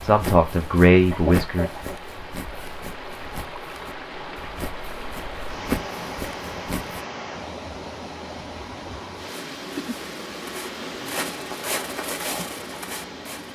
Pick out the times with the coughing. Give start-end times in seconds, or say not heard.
1.1-2.0.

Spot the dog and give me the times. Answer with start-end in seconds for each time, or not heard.
not heard.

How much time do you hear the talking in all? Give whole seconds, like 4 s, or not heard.
2 s.